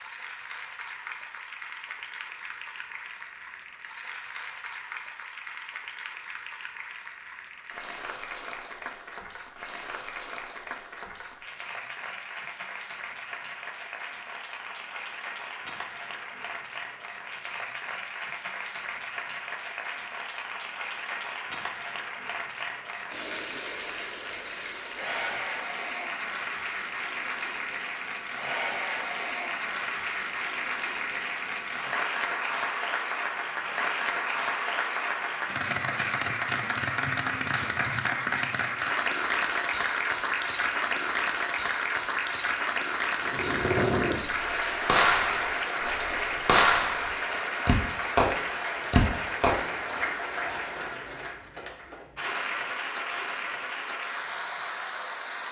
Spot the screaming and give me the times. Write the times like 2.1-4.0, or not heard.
24.9-25.5.